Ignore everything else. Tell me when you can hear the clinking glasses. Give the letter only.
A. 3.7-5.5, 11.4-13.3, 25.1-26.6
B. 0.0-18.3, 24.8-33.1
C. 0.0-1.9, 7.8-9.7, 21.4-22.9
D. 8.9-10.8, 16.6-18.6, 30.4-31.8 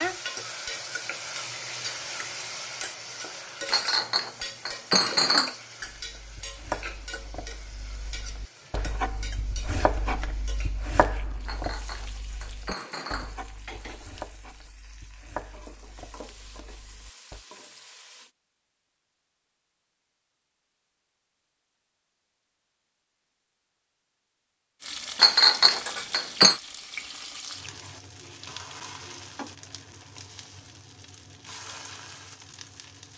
A.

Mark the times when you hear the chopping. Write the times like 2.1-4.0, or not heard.
5.8-17.4.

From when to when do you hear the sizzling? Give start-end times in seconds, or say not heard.
0.0-18.3, 24.8-33.1.